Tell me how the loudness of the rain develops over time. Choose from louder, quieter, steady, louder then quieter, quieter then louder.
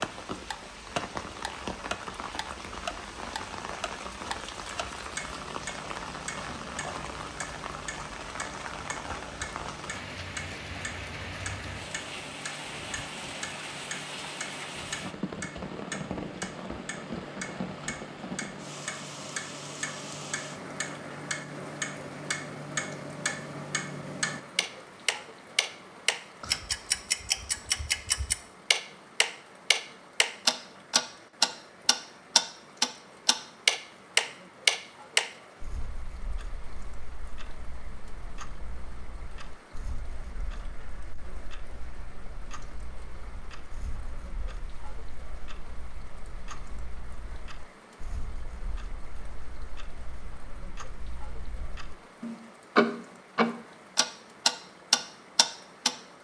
quieter.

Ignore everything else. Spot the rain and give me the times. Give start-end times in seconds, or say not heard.
0.0-56.1.